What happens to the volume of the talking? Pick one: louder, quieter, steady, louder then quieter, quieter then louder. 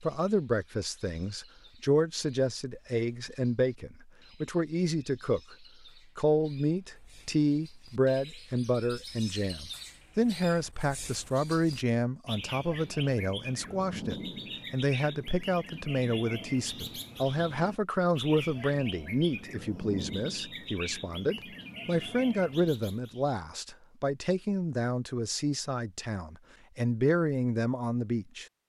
steady.